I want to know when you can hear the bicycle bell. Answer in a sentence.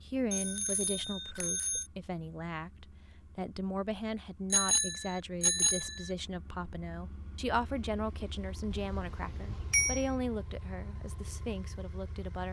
The bicycle bell can be heard from 0.3 to 1.9 s, from 4.5 to 6.1 s and from 8.7 to 10.2 s.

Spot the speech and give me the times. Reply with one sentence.
The speech can be heard from 0.0 to 12.4 s.